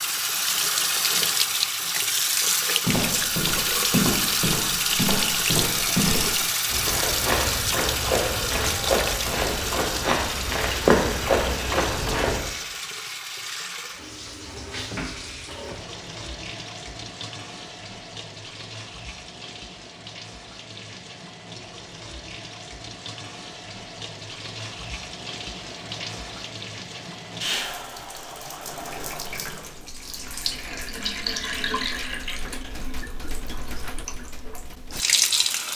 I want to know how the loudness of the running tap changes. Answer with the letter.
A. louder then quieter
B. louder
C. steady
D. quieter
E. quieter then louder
E.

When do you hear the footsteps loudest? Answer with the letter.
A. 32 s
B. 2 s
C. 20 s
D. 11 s
D.